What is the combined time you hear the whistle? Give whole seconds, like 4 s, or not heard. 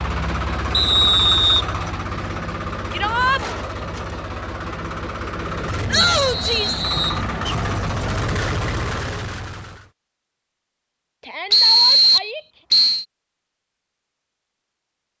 4 s.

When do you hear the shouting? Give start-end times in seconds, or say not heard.
2.9-3.4, 5.8-6.8, 11.2-12.4.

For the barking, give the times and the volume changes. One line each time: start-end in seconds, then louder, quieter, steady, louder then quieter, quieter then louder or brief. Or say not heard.
not heard.